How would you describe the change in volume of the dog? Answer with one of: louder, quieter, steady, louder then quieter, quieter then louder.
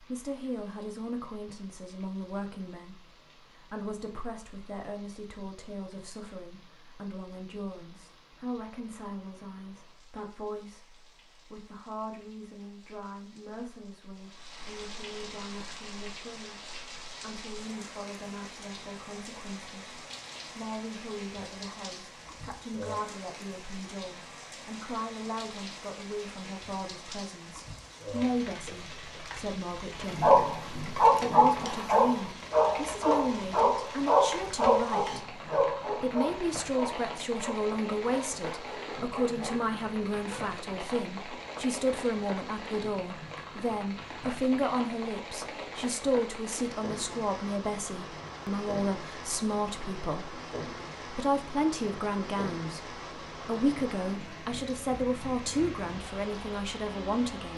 quieter.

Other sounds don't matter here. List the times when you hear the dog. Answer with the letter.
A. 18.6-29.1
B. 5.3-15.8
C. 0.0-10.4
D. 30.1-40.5
D.